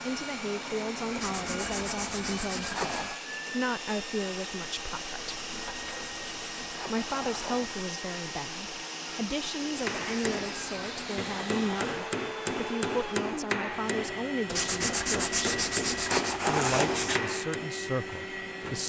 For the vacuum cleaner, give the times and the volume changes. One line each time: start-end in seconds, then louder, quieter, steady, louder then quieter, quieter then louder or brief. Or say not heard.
0.0-18.8 steady.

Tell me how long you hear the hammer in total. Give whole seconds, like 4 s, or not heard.
8 s.